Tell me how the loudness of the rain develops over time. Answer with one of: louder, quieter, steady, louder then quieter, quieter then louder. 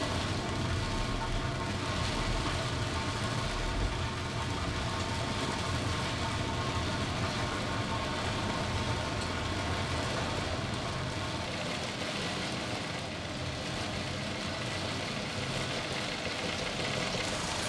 steady.